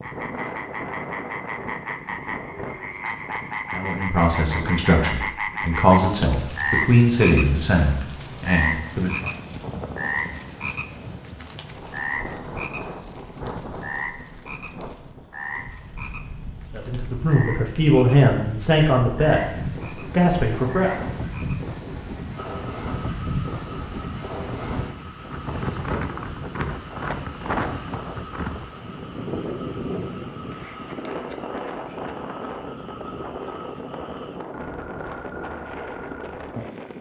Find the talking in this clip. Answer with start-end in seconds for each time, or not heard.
3.7-9.3, 16.7-20.9.